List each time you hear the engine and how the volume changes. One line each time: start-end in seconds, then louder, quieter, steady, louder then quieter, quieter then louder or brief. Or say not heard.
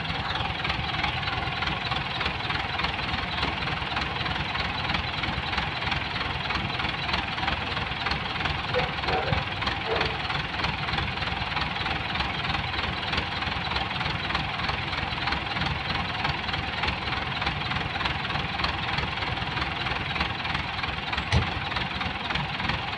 0.0-22.9 steady.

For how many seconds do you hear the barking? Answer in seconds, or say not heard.
2 s.